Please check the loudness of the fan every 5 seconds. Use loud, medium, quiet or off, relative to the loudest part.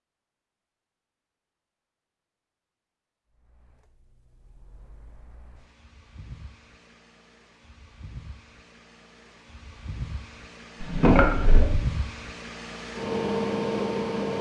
quiet, quiet, loud.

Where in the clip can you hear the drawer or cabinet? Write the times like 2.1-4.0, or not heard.
10.8-11.8.